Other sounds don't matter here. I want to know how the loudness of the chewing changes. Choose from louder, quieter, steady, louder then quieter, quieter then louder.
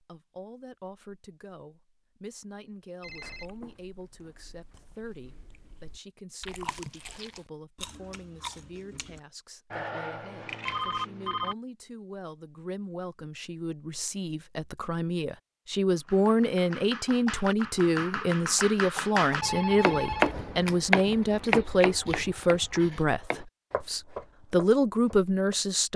louder.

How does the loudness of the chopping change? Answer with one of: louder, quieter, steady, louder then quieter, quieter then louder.
louder then quieter.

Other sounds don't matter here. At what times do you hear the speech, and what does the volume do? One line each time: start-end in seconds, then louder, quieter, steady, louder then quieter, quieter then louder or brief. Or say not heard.
0.0-25.9 louder.